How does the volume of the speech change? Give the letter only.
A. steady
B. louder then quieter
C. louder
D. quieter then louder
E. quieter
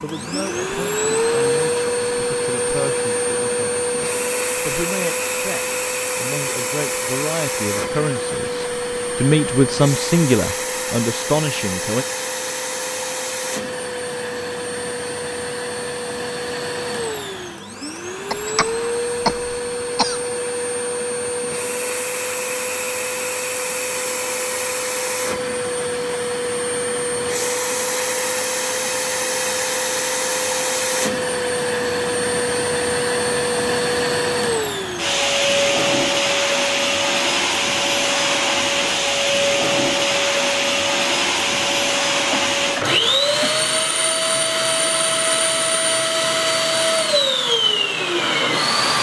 C.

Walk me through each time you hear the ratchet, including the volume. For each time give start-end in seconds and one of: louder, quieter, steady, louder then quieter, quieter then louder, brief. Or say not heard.
not heard.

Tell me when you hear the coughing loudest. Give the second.
19 s.